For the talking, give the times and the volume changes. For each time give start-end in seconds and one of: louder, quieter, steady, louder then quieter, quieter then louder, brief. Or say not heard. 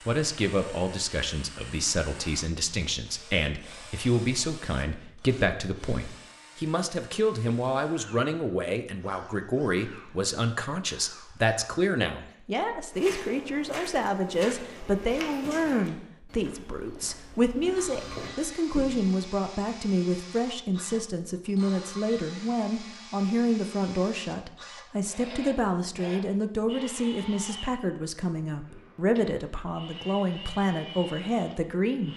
0.1-32.1 steady.